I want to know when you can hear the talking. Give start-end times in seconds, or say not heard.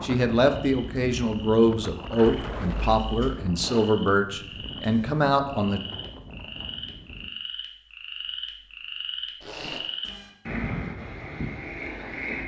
0.0-5.8.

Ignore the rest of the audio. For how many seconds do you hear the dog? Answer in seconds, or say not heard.
not heard.